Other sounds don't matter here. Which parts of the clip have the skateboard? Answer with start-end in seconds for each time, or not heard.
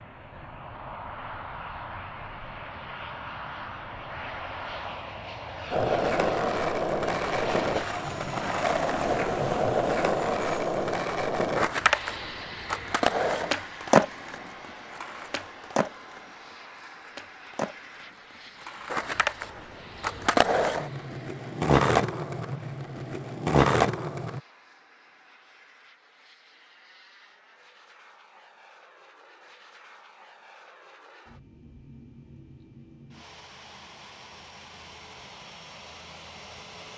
5.7-24.4.